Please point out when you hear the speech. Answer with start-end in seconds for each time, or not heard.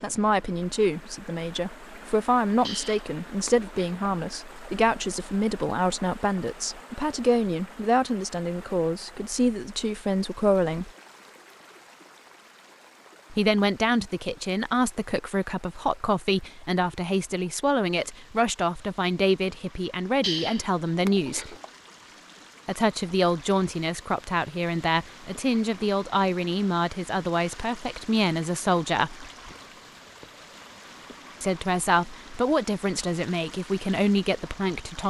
0.0-10.9, 13.3-21.6, 22.6-29.2, 31.4-35.0.